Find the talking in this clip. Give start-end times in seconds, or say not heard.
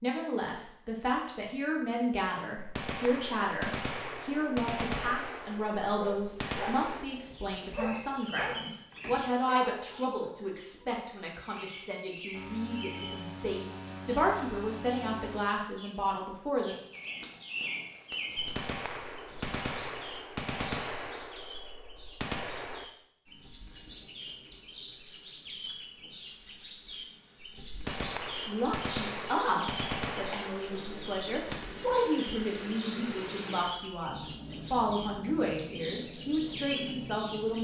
0.0-16.8, 28.4-37.5.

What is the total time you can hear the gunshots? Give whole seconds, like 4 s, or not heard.
13 s.